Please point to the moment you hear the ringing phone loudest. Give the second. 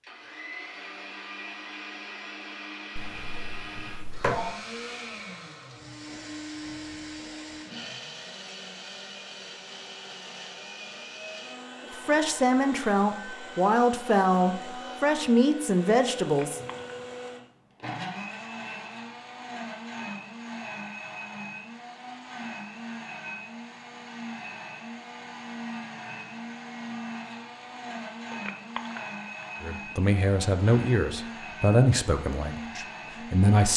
4 s.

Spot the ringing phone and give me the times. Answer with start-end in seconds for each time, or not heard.
3.0-4.6, 16.2-16.9, 28.3-29.4.